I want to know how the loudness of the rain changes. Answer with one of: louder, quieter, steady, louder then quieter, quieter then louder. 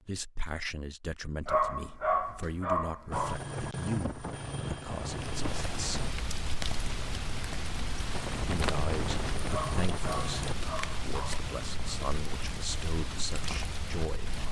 steady.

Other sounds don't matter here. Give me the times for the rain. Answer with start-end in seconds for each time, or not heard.
5.0-14.4.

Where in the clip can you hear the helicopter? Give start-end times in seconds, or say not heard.
3.1-6.2, 8.1-10.6.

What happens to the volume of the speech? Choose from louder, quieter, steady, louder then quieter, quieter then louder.
steady.